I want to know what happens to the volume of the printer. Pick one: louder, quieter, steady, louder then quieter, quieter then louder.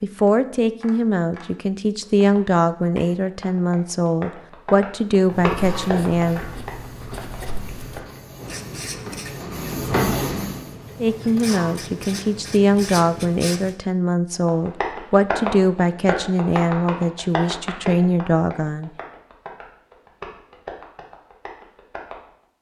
louder then quieter.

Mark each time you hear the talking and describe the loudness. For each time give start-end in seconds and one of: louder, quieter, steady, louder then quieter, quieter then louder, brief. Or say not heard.
0.0-6.5 steady
11.0-18.9 steady.